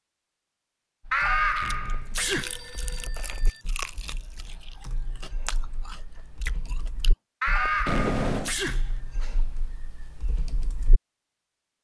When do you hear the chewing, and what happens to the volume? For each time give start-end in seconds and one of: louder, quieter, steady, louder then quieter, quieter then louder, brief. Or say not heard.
1.6-7.2 quieter then louder.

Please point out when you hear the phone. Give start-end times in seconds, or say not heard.
1.6-3.6, 7.8-8.6.